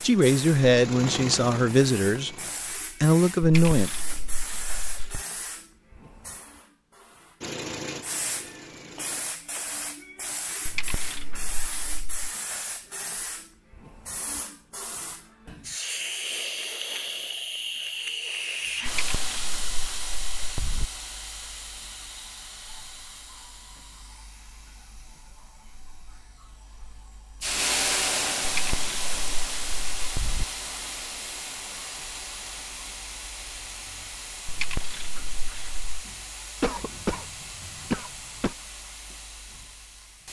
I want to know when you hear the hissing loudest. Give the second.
28 s.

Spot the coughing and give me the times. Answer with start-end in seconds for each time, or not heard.
36.6-38.5.